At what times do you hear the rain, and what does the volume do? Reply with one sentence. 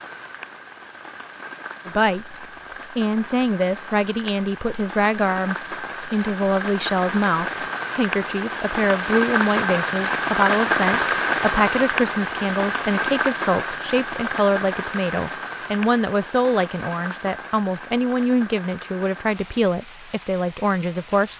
The rain can be heard from 0.0 to 21.3 s, getting louder then quieter.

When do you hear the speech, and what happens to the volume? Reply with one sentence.
The speech can be heard from 1.9 to 21.3 s, at a steady volume.